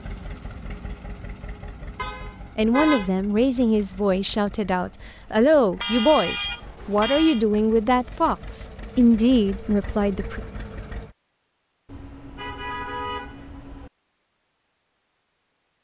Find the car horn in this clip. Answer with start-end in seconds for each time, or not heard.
1.9-3.1, 5.8-7.5, 11.8-13.9.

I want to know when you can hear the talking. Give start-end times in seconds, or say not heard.
2.5-10.4.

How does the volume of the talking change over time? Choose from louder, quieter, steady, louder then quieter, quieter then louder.
steady.